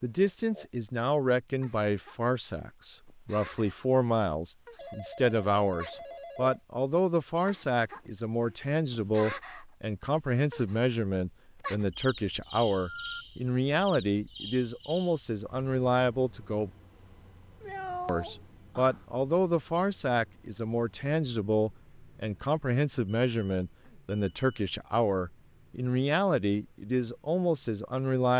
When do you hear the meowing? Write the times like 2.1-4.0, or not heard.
17.6-19.1.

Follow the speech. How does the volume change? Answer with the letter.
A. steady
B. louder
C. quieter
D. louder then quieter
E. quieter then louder
A.